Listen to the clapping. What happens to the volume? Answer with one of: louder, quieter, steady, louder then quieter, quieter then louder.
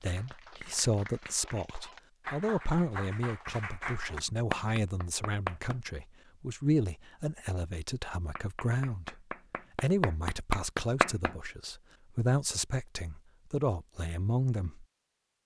louder.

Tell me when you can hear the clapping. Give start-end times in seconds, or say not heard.
0.0-5.8, 8.3-11.3.